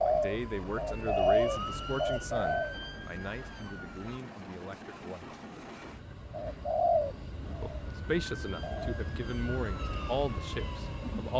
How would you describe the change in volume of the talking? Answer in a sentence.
The loudness of the talking goes down, then up.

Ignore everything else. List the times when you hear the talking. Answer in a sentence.
You can hear the talking from 0.1 to 5.3 s and from 7.6 to 11.3 s.